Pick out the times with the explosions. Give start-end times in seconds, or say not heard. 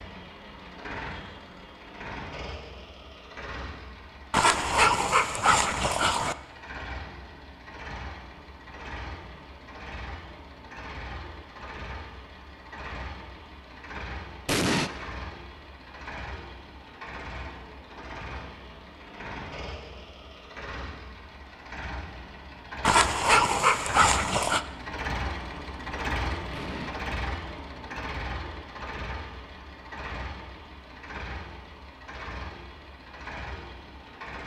14.4-14.9, 26.5-26.9.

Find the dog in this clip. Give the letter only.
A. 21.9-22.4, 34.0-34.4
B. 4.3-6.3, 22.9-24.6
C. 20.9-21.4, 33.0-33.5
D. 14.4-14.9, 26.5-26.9
B.